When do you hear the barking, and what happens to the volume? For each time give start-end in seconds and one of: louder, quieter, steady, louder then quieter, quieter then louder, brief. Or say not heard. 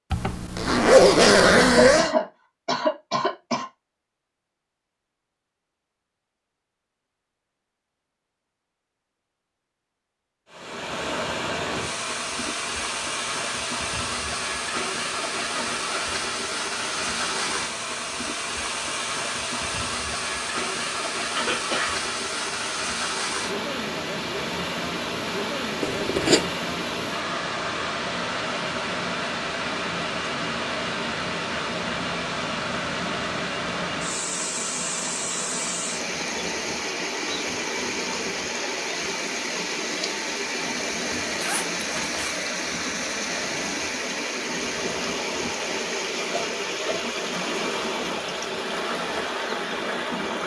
not heard.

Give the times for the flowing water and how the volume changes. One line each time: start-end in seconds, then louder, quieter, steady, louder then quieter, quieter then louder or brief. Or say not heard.
10.5-50.4 steady.